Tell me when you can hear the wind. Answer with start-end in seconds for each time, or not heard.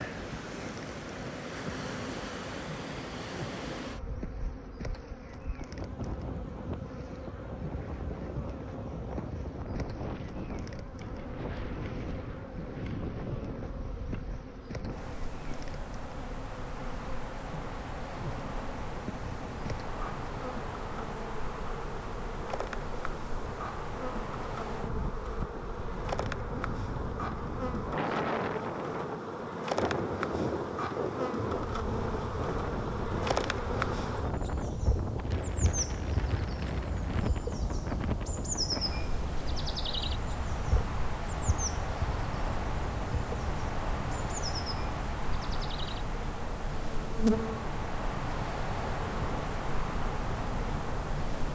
0.0-51.5.